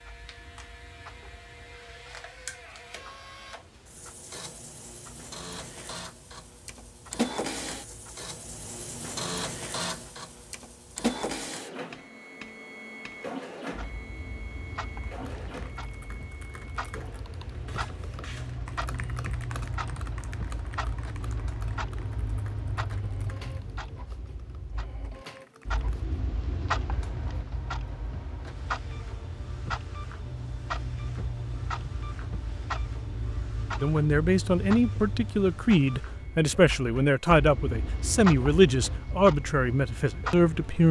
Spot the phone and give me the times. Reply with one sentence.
The phone can't be heard in this clip.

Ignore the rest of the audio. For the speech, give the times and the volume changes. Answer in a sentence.
You can hear the speech from 33.8 to 40.8 s, at a steady volume.